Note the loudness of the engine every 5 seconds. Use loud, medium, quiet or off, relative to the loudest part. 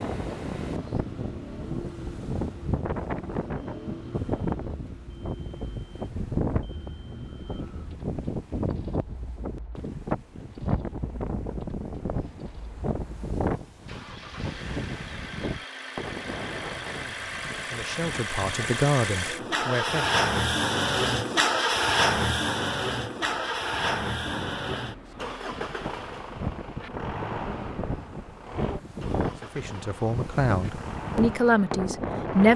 quiet, quiet, quiet, medium, loud, quiet, quiet.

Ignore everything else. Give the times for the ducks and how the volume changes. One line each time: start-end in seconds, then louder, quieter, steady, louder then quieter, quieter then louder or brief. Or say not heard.
not heard.